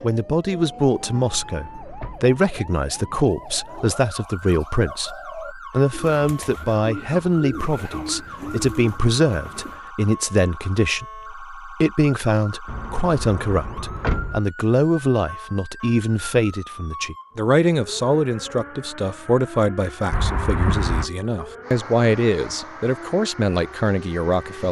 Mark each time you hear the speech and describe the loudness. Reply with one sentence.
You can hear the speech from 0.0 to 24.6 s, at a steady volume.